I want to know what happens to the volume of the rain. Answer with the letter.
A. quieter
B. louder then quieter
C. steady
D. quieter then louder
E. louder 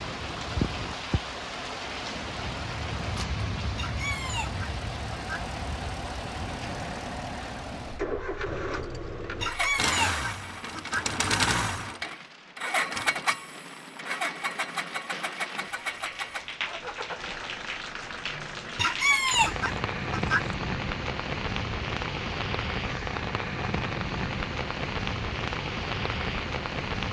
D.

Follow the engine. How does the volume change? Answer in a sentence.
The volume of the engine goes up, then down.